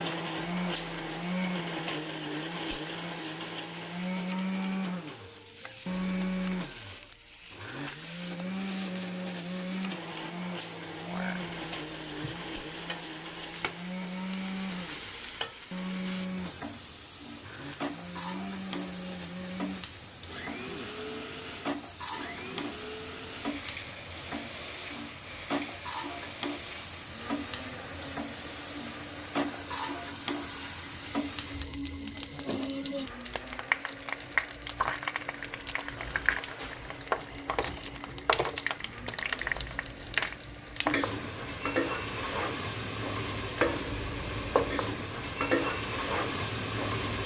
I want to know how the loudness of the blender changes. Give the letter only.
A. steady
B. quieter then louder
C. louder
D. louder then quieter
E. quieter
E.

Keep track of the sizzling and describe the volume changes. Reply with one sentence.
The loudness of the sizzling goes up.